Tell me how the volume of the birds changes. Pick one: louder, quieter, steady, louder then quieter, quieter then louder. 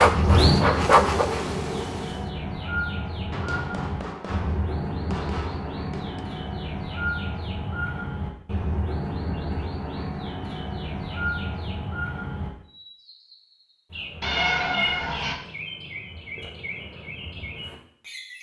quieter.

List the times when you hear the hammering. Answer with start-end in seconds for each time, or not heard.
3.3-6.2.